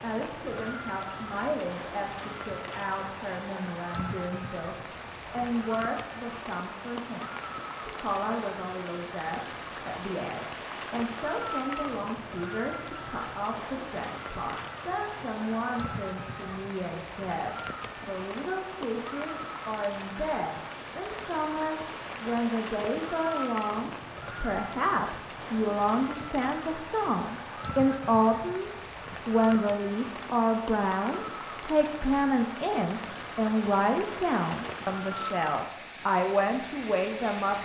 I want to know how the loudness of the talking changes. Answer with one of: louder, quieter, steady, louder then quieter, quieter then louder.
louder.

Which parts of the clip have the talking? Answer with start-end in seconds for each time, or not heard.
0.0-37.6.